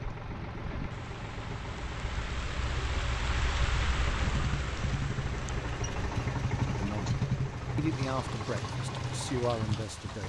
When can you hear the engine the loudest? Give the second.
7 s.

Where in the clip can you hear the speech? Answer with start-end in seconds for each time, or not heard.
6.8-10.2.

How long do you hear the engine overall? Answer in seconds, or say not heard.
10 s.